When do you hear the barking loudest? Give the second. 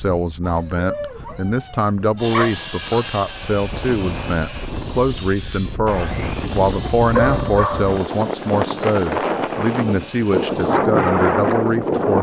7 s.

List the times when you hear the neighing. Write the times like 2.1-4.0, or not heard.
not heard.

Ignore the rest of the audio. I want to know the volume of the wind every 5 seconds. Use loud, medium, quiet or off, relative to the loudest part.
quiet, medium, loud.